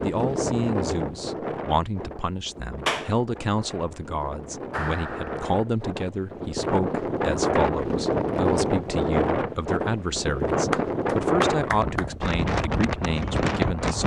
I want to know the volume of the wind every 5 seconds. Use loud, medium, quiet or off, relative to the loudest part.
medium, loud, loud.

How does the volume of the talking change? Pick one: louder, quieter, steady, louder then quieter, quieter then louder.
steady.